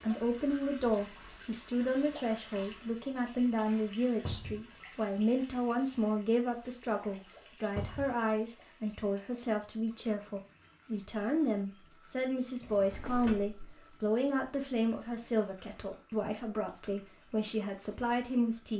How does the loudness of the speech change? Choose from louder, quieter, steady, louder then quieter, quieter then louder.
steady.